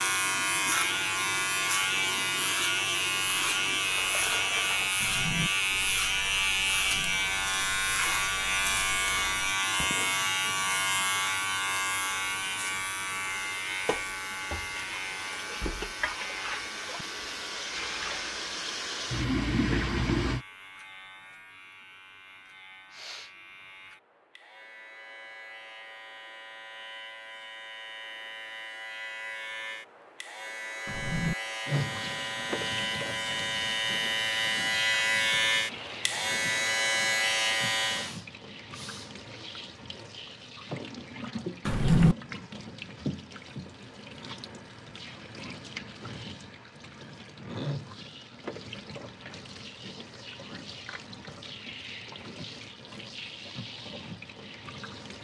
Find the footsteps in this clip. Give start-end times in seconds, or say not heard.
not heard.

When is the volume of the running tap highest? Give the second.
20 s.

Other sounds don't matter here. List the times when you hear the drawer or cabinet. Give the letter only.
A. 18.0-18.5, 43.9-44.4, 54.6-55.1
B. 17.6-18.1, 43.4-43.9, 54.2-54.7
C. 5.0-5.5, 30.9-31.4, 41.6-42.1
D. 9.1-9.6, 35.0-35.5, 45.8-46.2
C.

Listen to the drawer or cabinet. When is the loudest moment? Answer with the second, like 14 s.
42 s.